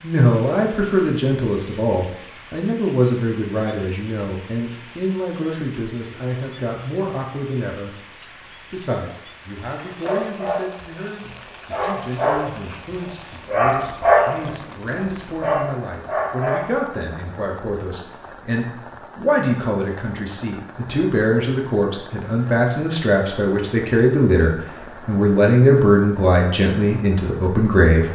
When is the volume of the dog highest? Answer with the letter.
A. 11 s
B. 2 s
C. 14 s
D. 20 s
C.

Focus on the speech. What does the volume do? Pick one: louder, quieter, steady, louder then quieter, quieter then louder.
quieter then louder.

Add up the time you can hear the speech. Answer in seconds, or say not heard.
28 s.